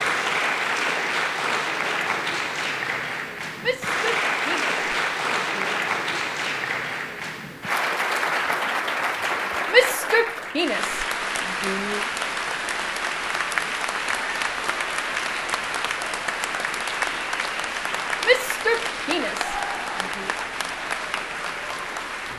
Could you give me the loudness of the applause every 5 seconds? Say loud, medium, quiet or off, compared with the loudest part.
loud, loud, loud, loud, medium.